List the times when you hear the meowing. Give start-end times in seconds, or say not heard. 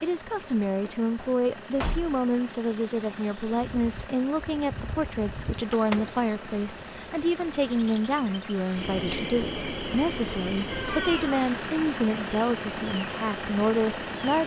not heard.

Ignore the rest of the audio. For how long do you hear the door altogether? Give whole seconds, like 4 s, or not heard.
3 s.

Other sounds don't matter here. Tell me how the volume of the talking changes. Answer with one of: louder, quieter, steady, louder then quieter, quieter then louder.
steady.